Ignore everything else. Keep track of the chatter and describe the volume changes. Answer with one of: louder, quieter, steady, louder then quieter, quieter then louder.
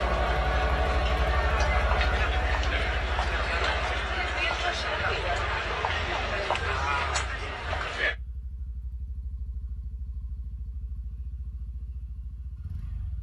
steady.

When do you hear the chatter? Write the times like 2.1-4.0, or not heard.
0.0-8.2.